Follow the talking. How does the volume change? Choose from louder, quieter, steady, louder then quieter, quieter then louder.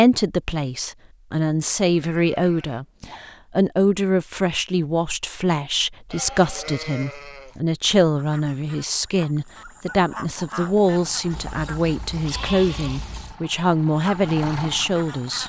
steady.